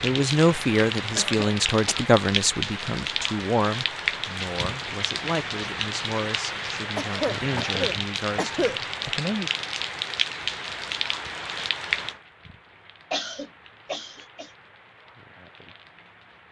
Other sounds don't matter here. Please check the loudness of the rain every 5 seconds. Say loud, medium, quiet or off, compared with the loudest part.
loud, loud, loud, quiet.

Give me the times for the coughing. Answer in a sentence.
You can hear the coughing from 1.1 to 2.0 s, from 7.0 to 8.8 s and from 13.1 to 14.5 s.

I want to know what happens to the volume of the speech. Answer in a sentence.
The volume of the speech goes down.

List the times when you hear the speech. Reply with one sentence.
The speech can be heard from 0.0 to 9.5 s.